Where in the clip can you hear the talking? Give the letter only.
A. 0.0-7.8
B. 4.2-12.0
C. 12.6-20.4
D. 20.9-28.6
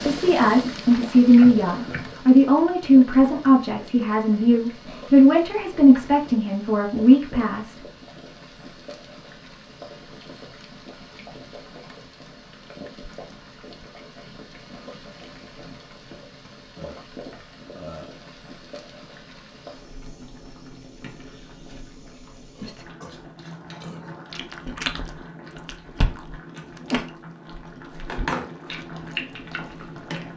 A.